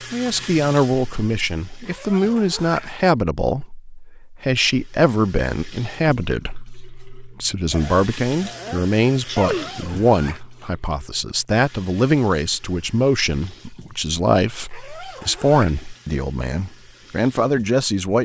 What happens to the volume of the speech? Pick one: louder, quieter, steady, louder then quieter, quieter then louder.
steady.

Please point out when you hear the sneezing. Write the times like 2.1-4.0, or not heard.
7.7-9.8.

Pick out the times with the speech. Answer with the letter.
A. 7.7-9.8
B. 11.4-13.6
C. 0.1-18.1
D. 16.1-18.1
C.